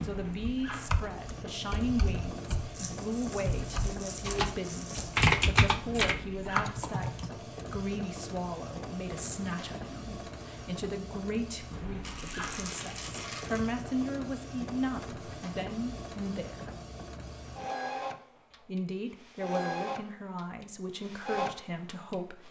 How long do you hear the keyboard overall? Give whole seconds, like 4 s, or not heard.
7 s.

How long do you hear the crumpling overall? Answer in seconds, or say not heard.
4 s.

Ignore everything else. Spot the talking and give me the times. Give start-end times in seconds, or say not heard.
0.0-16.7, 18.6-22.4.